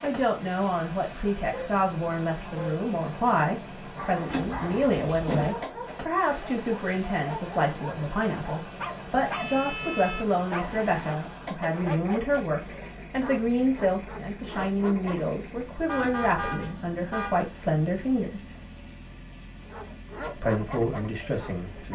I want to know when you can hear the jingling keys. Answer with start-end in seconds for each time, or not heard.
4.2-5.5, 15.9-16.8.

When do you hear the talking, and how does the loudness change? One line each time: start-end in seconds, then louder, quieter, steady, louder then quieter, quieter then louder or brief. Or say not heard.
0.0-18.6 steady
20.4-21.9 brief.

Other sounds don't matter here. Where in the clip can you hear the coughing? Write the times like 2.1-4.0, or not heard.
not heard.